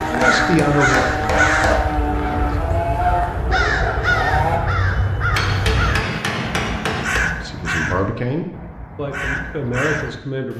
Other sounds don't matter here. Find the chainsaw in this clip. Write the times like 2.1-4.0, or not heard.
0.0-4.6.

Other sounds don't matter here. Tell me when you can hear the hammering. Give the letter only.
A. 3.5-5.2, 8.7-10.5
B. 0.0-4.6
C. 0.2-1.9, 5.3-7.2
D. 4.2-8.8
C.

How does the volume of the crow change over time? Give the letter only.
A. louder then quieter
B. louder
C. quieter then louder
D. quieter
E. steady
D.